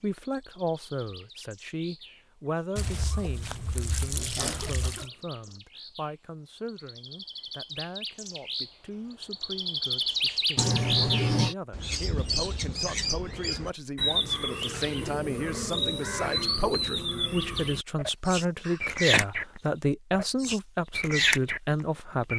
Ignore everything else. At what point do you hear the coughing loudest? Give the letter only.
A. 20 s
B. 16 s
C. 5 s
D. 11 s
D.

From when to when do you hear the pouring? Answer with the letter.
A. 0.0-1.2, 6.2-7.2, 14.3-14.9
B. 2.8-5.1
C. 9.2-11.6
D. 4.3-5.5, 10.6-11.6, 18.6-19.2
B.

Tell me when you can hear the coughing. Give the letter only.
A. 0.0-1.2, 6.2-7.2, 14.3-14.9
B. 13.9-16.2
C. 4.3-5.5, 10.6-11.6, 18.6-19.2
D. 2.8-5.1
C.